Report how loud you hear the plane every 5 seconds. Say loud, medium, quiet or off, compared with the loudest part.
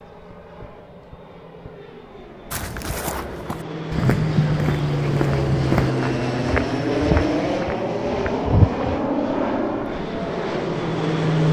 medium, loud, loud.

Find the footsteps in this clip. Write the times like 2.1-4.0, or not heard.
2.5-9.0.